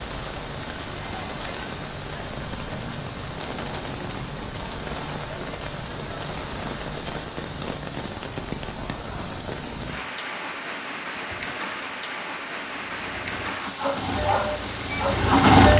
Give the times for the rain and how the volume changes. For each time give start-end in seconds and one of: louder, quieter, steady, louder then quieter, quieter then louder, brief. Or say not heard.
0.0-15.5 steady.